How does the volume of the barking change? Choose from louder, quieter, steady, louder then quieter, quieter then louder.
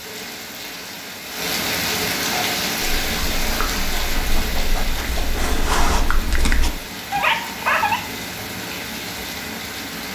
louder.